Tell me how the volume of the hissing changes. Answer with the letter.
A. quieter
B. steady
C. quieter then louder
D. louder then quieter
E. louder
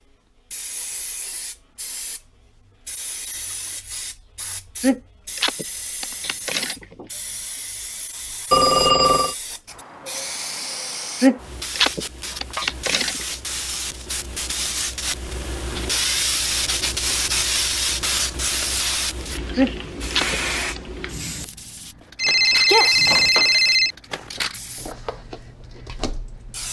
D.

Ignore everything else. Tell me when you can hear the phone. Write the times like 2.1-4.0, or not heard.
8.5-9.3, 22.1-23.9.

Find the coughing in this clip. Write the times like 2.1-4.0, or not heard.
4.8-7.0, 11.2-13.2, 19.6-20.8.